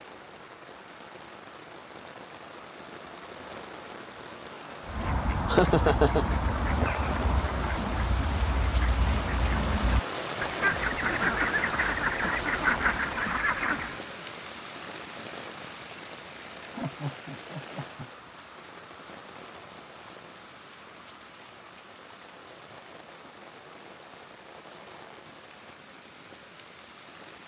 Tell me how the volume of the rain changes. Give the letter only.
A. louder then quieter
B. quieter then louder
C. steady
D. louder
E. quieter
A.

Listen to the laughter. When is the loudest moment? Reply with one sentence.
The volume of the laughter peaks at 6 seconds.